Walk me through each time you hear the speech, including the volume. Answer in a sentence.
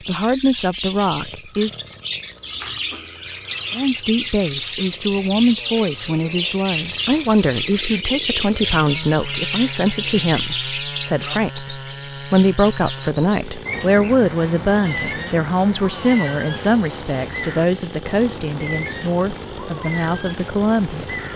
The speech can be heard briefly from 0.1 to 1.8 s; and from 3.8 to 21.1 s, at a steady volume.